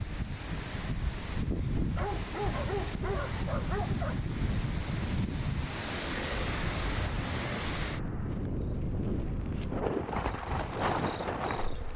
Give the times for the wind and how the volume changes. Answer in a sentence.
You can hear the wind from 0.0 to 11.9 s, at a steady volume.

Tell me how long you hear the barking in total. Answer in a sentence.
You can hear the barking for 2 seconds altogether.